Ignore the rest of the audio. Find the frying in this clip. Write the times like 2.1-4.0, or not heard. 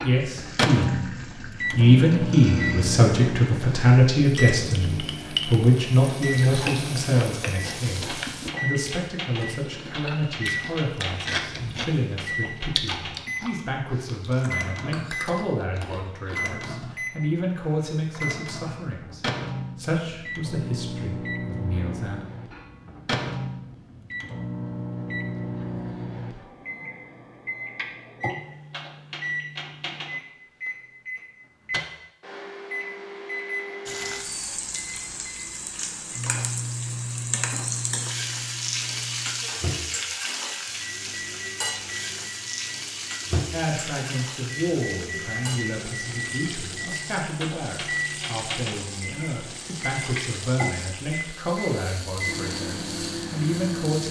0.2-8.5, 33.9-54.0.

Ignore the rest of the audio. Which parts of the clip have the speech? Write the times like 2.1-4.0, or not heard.
0.0-1.1, 1.7-22.2, 43.5-54.0.